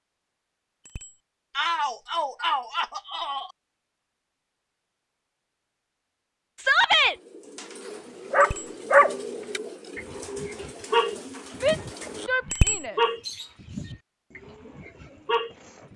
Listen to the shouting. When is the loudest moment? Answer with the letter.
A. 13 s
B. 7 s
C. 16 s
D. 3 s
B.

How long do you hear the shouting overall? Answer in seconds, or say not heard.
4 s.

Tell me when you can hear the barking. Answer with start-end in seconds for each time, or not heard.
8.3-15.9.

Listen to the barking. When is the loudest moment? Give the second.
9 s.